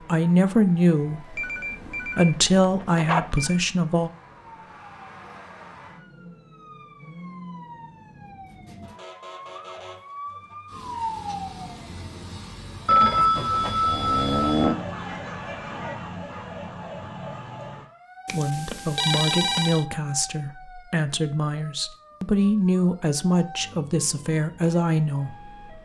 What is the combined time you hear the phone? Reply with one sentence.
The phone can be heard for 6 seconds in total.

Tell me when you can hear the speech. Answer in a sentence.
You can hear the speech from 0.1 to 1.4 s, from 2.0 to 4.1 s and from 18.3 to 25.8 s.